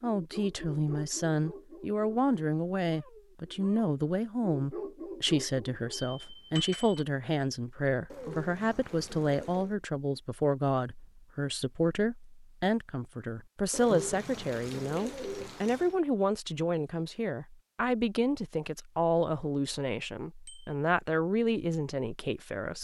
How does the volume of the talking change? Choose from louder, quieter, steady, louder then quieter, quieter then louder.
steady.